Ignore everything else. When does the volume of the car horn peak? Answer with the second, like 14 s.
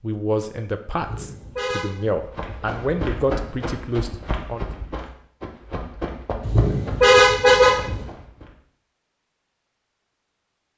7 s.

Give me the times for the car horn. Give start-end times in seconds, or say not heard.
0.9-2.0, 6.4-8.1.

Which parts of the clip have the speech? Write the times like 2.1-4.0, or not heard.
0.0-4.7.